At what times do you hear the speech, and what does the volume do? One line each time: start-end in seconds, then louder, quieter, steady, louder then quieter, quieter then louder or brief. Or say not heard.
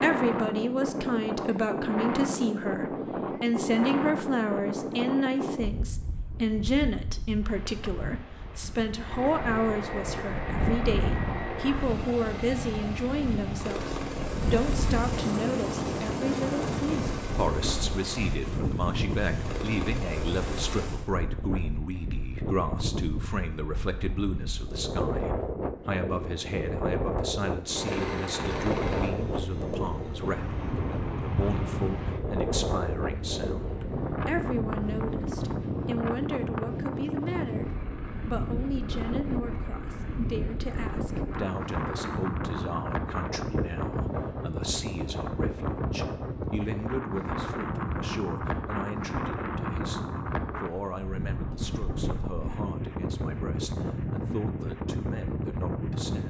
0.0-56.2 quieter.